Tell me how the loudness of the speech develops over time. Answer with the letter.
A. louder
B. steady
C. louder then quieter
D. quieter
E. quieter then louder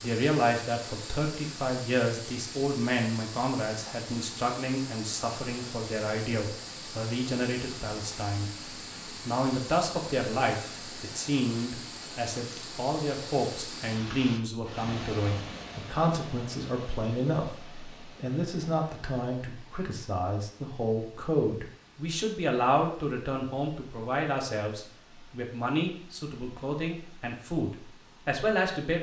B.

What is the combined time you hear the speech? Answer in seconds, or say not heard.
28 s.